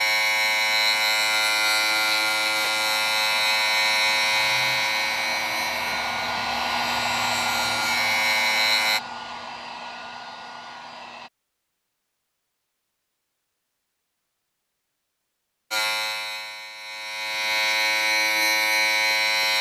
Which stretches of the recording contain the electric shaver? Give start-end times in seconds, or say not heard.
0.0-9.0, 15.7-19.5.